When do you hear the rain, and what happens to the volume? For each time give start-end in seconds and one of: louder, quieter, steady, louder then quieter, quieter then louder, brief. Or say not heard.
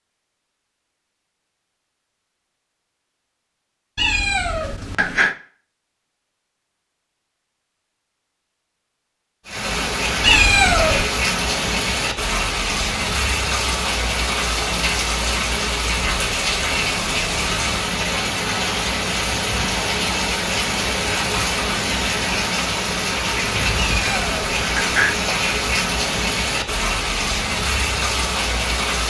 9.4-29.0 steady.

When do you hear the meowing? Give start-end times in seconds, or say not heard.
4.0-5.3, 10.2-11.1, 23.8-25.2.